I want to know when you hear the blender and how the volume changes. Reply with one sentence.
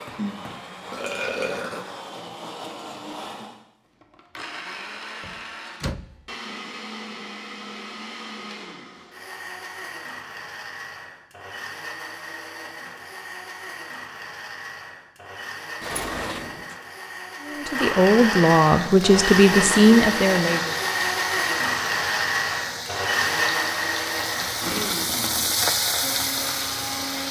The blender can be heard from 0.0 to 27.2 s, getting louder.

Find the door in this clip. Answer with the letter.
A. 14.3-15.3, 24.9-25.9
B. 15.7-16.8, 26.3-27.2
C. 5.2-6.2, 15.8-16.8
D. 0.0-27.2
C.